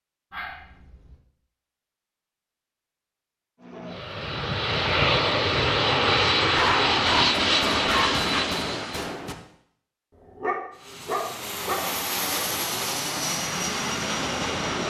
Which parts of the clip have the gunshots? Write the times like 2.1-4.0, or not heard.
7.3-9.3.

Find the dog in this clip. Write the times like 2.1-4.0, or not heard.
0.3-1.1, 6.4-8.4, 10.4-11.8.